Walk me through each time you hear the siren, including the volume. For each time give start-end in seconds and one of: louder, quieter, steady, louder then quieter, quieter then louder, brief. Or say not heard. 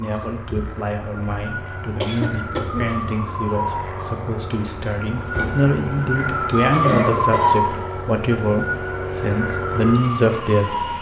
0.0-10.9 louder then quieter.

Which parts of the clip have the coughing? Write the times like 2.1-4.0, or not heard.
2.0-2.9, 6.8-7.6.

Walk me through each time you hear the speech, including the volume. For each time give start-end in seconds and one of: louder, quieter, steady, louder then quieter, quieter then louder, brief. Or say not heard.
0.0-10.9 louder.